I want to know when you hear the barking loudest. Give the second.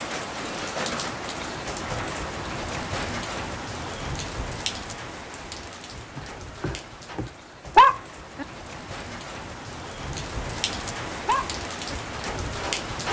8 s.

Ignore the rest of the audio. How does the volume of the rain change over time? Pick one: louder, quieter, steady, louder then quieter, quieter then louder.
quieter then louder.